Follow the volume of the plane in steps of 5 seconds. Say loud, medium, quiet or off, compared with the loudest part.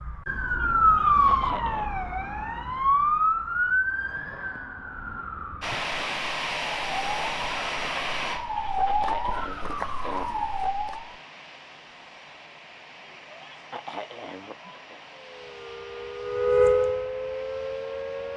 off, loud, quiet, quiet.